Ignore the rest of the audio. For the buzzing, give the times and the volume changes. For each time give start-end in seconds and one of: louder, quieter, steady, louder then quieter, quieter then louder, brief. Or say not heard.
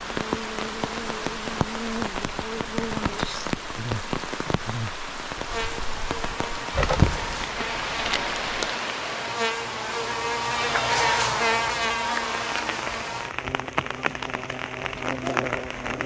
0.0-16.0 louder then quieter.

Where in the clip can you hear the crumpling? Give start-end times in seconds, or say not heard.
6.7-8.8.